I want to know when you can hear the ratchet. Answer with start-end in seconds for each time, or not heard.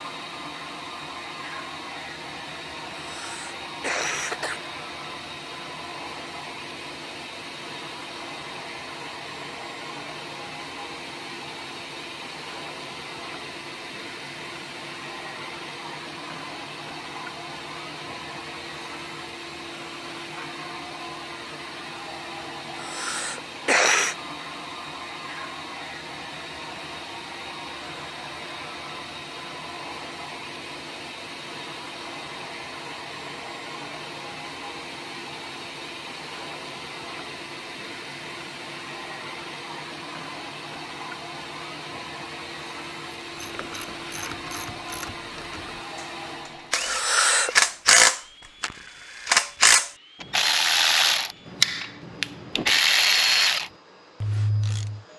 43.2-55.0.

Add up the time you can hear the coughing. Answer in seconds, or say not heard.
4 s.